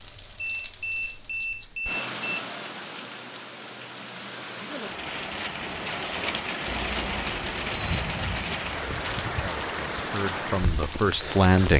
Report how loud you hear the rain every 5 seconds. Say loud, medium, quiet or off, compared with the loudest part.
medium, loud, loud.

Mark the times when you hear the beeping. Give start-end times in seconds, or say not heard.
0.3-2.4, 6.7-8.1.